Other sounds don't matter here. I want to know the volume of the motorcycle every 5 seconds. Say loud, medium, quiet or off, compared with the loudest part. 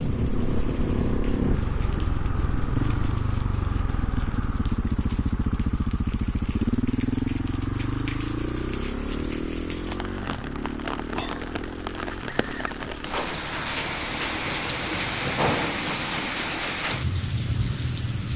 loud, loud, medium, quiet.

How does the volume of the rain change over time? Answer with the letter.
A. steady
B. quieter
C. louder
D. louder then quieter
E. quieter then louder
C.